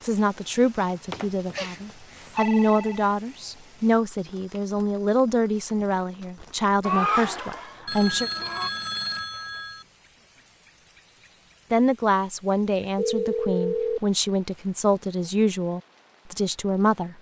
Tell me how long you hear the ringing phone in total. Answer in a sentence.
You can hear the ringing phone for 5 seconds altogether.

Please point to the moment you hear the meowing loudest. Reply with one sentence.
The volume of the meowing peaks at 7 seconds.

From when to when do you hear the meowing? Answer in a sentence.
The meowing can be heard from 6.8 to 8.7 s.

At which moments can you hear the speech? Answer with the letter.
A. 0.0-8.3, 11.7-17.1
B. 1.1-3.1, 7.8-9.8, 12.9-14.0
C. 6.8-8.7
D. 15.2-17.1
A.